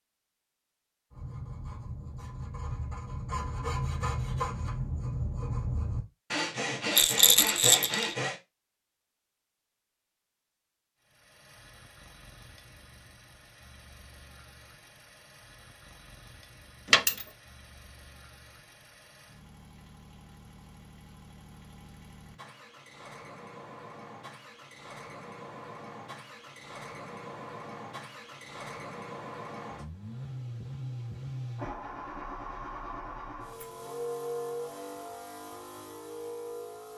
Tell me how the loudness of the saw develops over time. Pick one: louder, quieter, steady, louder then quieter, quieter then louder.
louder.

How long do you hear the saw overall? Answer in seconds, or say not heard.
7 s.